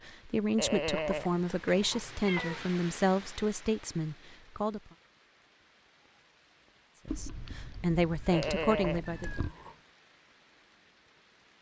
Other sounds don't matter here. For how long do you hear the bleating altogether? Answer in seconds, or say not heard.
3 s.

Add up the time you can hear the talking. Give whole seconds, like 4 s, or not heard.
7 s.